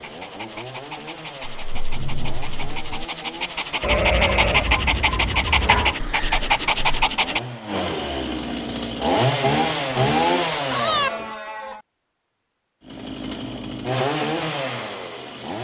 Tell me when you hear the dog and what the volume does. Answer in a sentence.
You can hear the dog from 0.0 to 7.4 s, getting louder.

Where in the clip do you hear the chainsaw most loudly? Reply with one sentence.
The volume of the chainsaw peaks at 10 seconds.